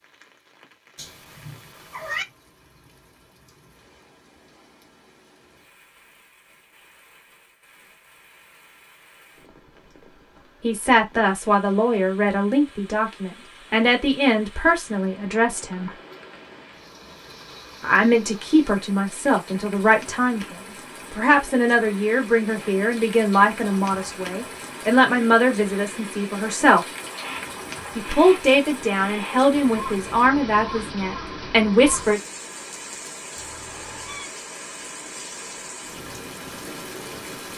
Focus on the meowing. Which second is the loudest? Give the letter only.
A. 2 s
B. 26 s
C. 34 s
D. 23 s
A.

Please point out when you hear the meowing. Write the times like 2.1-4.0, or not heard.
0.9-2.2, 33.4-34.3.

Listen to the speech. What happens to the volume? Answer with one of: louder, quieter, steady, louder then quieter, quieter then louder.
steady.